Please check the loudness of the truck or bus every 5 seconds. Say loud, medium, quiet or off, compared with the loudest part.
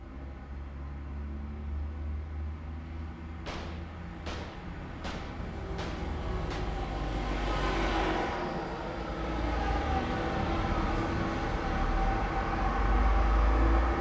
quiet, loud, loud.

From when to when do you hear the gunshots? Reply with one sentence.
You can hear the gunshots from 3.5 to 6.7 s.